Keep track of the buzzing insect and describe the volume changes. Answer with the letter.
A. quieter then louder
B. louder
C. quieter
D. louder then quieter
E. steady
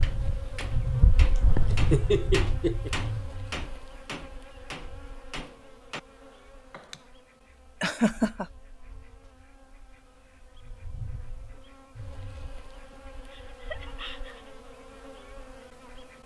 A.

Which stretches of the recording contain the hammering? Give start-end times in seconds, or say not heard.
0.0-7.0.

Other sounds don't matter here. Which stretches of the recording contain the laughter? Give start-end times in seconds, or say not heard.
1.4-2.9, 7.8-8.4, 13.3-14.5.